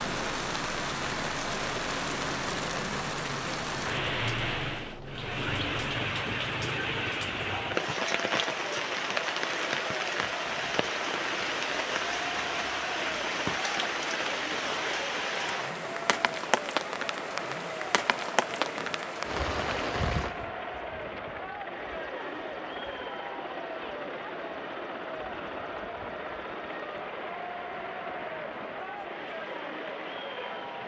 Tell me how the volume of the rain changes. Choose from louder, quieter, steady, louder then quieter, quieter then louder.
quieter.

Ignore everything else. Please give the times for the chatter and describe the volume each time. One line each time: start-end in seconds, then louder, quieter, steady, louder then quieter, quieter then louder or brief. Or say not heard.
7.5-30.8 steady.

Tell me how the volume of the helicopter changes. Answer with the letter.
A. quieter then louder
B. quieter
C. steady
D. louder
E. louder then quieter
C.